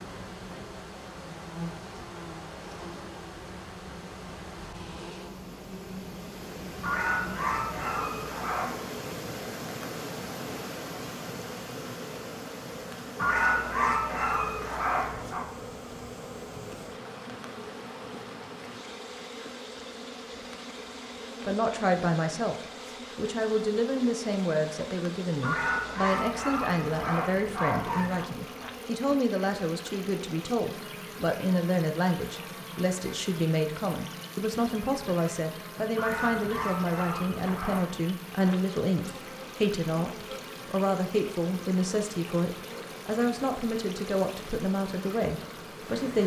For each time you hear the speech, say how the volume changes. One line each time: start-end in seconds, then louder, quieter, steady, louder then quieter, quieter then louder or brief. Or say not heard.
21.4-22.6 brief
23.1-46.2 steady.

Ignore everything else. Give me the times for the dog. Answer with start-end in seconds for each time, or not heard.
6.8-8.8, 13.2-15.4, 25.4-28.2, 36.0-37.9.